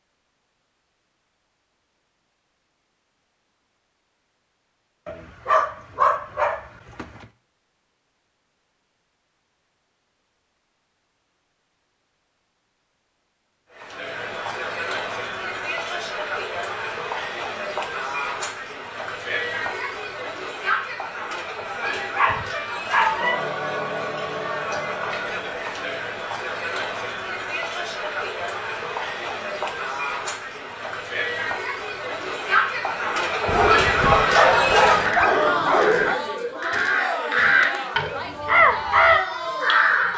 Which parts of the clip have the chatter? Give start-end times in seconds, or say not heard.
13.7-40.1.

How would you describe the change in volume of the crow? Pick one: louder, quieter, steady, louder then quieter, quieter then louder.
louder.